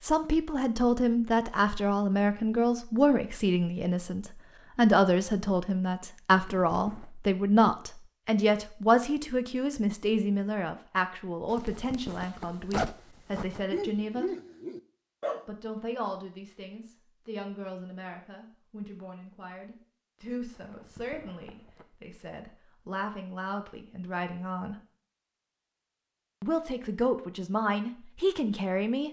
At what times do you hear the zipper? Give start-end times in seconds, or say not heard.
6.2-7.1, 11.4-13.7, 20.5-21.9.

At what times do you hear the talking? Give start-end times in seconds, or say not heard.
0.0-14.3, 15.4-24.8, 26.4-29.0.